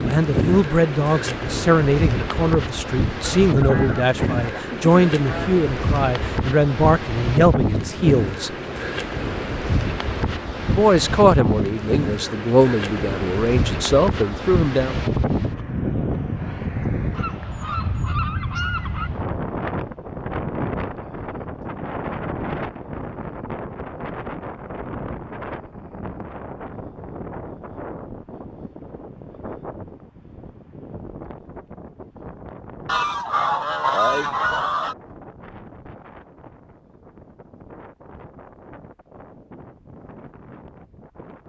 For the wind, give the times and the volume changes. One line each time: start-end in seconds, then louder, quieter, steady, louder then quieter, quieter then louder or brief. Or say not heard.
0.0-41.4 quieter.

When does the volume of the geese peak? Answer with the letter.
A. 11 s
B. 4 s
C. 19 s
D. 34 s
D.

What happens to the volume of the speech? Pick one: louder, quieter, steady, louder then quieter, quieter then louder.
steady.